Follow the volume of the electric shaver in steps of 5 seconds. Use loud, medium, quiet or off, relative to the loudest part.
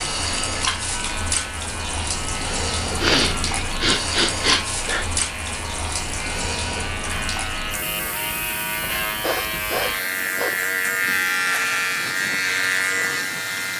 medium, medium, loud.